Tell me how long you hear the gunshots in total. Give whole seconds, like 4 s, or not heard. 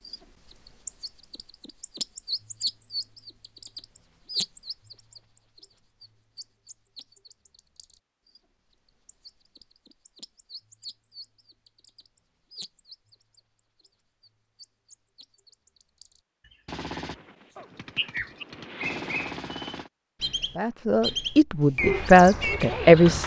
3 s.